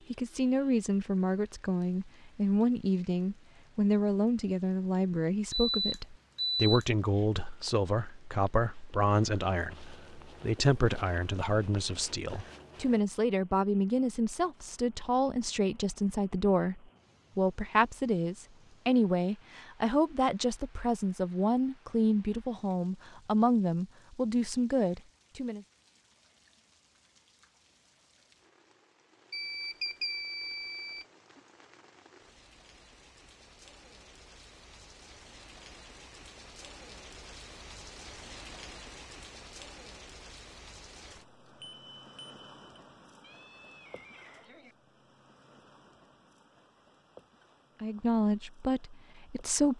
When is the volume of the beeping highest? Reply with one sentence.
The loudest moment of the beeping is at 7 seconds.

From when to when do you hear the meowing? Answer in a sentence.
The meowing can be heard from 43.2 to 44.8 s.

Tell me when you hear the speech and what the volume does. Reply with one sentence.
The speech can be heard from 0.1 to 25.6 s, at a steady volume; and briefly from 47.8 to 49.7 s.